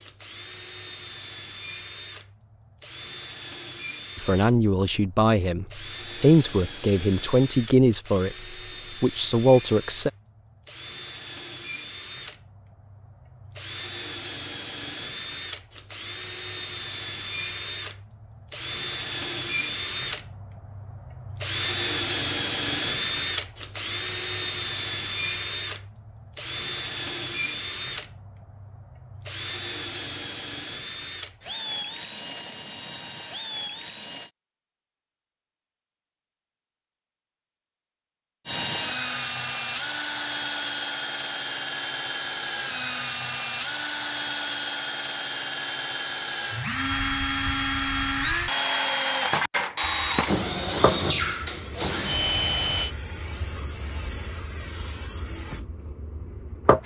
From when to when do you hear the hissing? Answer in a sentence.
The hissing can be heard from 49.8 to 56.8 s.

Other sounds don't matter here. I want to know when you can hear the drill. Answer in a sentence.
The drill can be heard from 0.0 to 34.3 s and from 38.5 to 53.0 s.